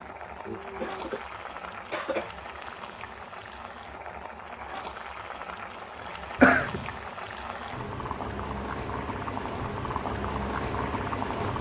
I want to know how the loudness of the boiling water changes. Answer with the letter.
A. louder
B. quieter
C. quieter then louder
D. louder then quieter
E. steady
A.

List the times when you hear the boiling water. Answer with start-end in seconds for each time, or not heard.
0.0-11.5.